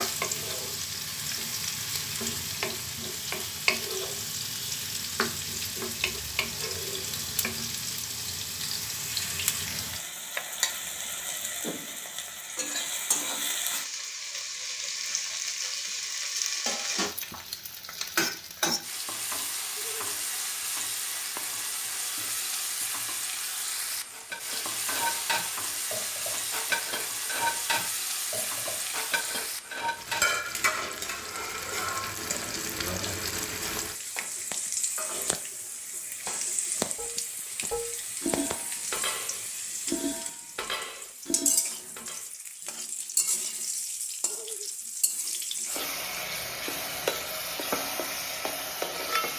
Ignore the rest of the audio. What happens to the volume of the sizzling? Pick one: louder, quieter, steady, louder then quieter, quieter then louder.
steady.